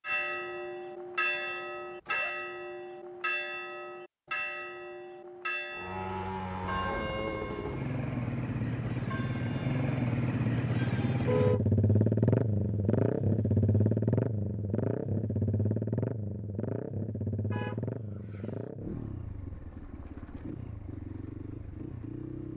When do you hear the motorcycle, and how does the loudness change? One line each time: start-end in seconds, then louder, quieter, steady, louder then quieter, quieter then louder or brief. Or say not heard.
5.7-22.5 louder then quieter.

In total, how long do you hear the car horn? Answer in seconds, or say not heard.
3 s.